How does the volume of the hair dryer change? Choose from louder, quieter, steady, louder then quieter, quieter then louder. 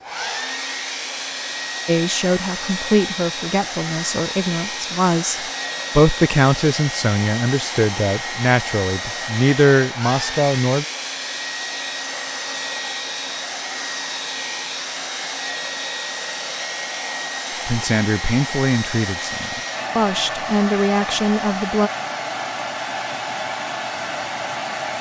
steady.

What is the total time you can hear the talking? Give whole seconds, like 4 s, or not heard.
13 s.